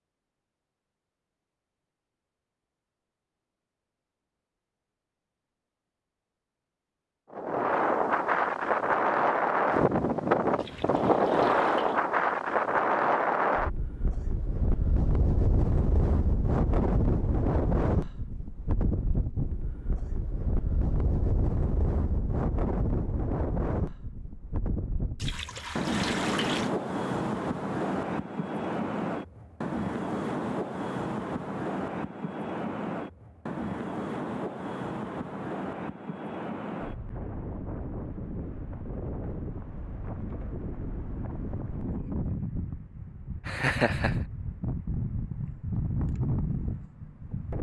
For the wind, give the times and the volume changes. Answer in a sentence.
You can hear the wind from 7.3 to 47.5 s, getting quieter.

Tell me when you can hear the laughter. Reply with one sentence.
The laughter can be heard from 43.5 to 44.1 s.